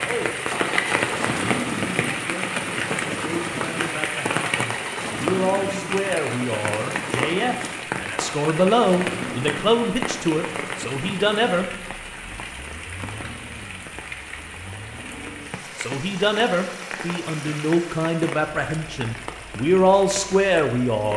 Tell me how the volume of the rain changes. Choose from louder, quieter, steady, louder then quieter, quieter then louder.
quieter.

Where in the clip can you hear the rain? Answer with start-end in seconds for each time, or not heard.
0.0-21.1.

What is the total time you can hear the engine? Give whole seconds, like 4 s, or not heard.
21 s.